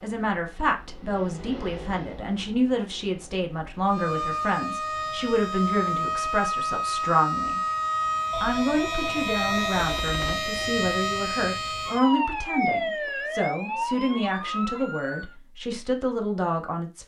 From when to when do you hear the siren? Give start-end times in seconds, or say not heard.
3.9-15.3.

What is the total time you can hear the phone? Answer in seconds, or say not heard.
2 s.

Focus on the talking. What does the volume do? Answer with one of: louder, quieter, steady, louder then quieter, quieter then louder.
steady.